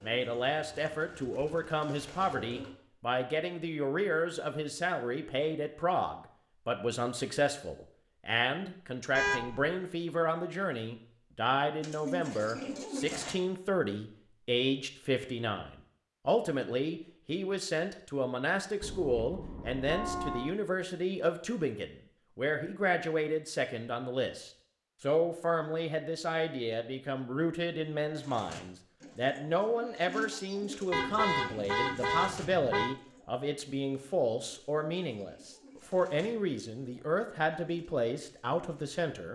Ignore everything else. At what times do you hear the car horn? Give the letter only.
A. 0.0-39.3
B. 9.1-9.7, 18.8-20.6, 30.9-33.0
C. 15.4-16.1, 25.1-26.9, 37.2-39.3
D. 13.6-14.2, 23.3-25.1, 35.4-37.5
B.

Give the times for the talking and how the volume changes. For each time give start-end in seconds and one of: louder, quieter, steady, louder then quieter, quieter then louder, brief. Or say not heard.
0.0-39.3 steady.